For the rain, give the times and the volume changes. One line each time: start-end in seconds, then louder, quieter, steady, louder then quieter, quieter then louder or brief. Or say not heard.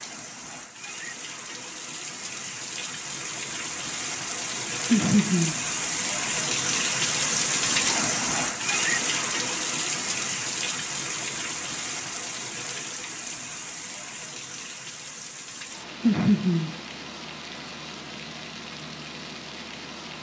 0.0-20.1 louder then quieter.